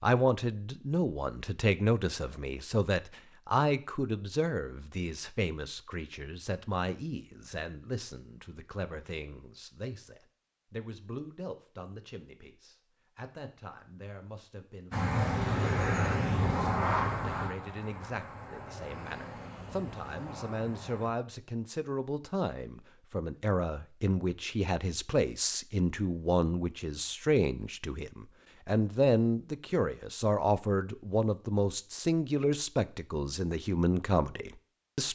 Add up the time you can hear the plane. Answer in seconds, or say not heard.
6 s.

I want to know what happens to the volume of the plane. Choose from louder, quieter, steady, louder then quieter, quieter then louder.
quieter.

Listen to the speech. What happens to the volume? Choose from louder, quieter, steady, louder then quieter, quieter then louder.
quieter then louder.